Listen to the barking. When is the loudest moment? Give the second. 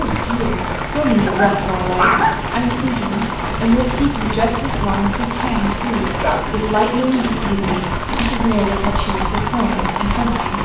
2 s.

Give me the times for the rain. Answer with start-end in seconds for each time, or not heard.
0.0-10.5.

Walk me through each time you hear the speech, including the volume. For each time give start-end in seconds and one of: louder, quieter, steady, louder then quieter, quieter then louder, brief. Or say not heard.
0.0-10.5 steady.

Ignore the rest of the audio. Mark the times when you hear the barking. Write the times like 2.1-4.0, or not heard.
1.2-2.5, 6.2-8.4.